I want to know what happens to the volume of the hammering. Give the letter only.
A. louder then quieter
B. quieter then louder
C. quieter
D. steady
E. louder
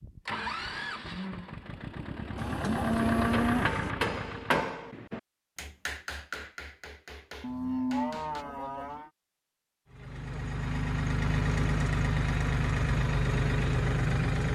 C.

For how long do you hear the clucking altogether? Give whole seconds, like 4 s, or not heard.
not heard.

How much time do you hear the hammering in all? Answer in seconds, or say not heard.
5 s.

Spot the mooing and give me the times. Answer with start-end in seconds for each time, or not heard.
2.4-4.0, 7.4-9.1.